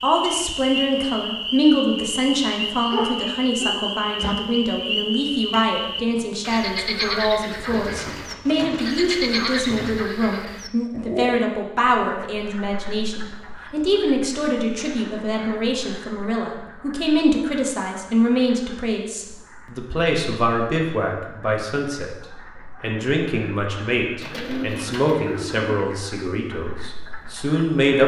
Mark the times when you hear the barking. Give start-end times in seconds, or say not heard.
2.9-4.3.